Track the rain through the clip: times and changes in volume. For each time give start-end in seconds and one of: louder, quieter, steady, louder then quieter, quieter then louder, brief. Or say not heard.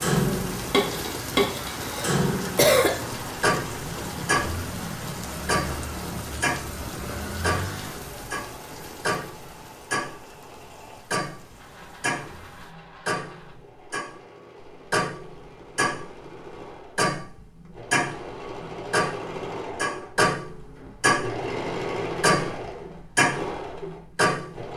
0.0-12.8 quieter.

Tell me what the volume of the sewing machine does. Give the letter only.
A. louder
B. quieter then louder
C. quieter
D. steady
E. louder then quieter
A.